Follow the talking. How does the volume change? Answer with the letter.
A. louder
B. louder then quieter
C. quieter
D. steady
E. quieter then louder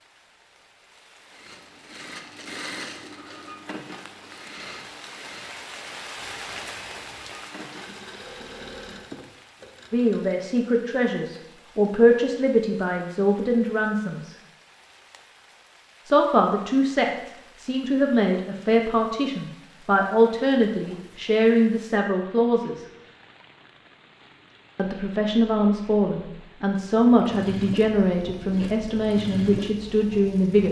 D.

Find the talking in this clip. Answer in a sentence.
The talking can be heard from 9.9 to 14.3 s, from 16.1 to 22.9 s and from 24.8 to 30.6 s.